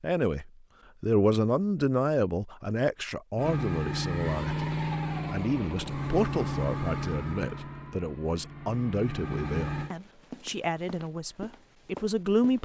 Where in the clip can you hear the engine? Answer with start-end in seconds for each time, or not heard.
3.4-9.9.